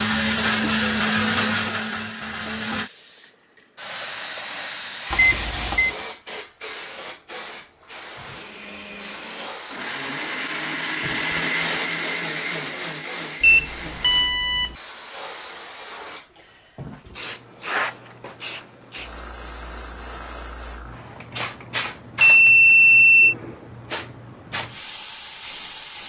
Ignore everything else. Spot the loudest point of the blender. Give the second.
1 s.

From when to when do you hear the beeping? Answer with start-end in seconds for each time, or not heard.
5.1-5.9, 13.4-14.8, 22.2-23.4.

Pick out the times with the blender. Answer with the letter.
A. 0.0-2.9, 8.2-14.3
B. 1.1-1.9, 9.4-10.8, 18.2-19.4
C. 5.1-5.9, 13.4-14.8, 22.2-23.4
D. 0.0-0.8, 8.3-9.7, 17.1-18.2
A.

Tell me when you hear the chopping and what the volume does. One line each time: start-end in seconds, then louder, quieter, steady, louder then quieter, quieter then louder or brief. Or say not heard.
not heard.